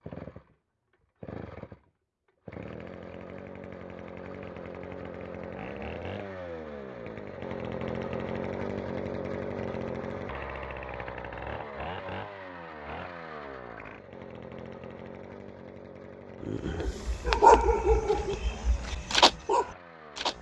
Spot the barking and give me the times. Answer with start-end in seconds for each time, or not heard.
16.4-20.3.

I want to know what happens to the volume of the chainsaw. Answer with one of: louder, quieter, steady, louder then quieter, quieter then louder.
louder then quieter.